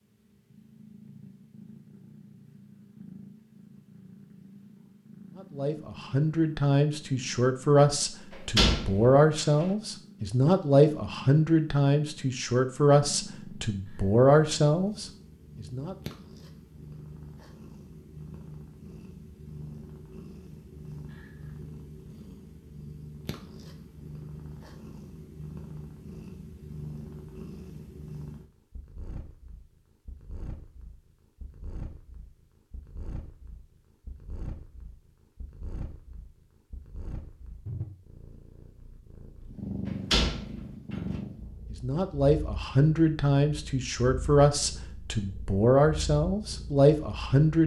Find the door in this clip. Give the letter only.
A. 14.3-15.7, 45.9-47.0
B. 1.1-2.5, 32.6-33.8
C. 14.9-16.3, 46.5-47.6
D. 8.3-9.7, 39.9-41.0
D.